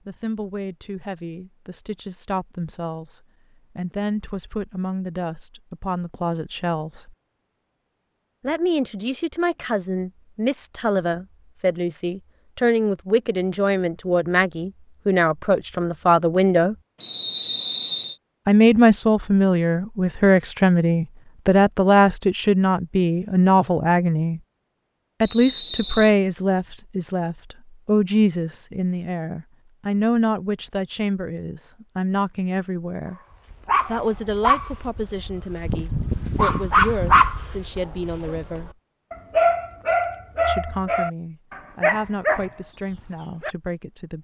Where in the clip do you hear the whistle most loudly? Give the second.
17 s.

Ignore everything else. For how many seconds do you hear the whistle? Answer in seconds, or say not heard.
2 s.